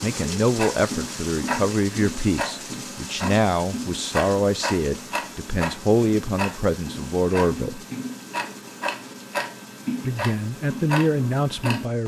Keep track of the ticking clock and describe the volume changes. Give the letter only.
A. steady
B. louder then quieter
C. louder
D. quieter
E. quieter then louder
A.